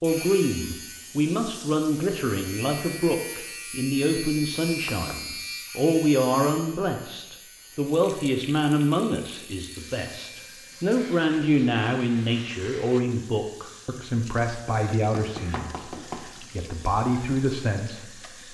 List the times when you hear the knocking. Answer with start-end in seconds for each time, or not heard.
4.7-5.2, 15.1-16.4.